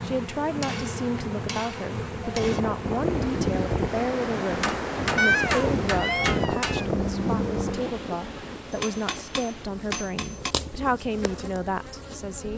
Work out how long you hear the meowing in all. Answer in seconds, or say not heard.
2 s.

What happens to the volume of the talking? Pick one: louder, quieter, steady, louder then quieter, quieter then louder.
steady.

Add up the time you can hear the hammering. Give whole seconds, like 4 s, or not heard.
6 s.